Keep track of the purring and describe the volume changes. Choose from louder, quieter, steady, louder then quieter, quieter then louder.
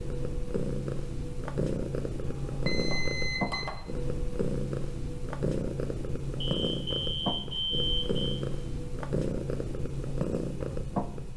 steady.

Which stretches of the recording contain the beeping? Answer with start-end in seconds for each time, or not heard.
2.2-3.8, 6.4-8.4.